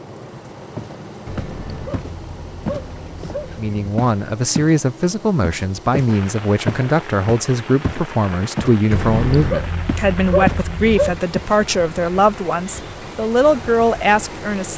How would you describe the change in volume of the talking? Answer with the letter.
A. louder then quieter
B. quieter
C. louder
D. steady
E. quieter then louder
D.